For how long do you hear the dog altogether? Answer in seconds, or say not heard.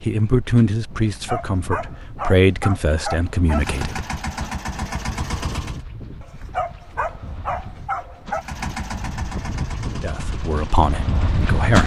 5 s.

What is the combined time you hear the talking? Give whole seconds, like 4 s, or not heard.
6 s.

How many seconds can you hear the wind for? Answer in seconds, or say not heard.
12 s.